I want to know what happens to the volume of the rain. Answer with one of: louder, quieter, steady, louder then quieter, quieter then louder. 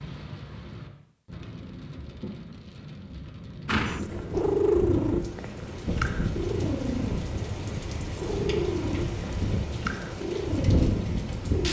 louder.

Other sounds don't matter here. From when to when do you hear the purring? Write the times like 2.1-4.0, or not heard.
3.6-11.6.